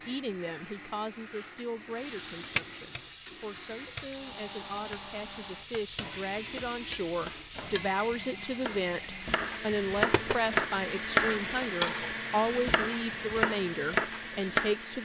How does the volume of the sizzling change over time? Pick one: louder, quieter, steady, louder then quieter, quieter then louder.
quieter.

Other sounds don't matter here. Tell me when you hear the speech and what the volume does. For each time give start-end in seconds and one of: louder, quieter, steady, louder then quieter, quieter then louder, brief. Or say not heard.
0.0-14.9 louder.